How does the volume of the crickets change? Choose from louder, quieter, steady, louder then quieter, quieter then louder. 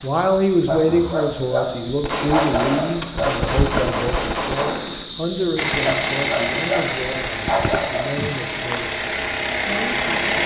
steady.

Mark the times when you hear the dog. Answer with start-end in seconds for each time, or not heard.
0.7-3.4, 5.8-8.2.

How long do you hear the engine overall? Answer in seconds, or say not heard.
5 s.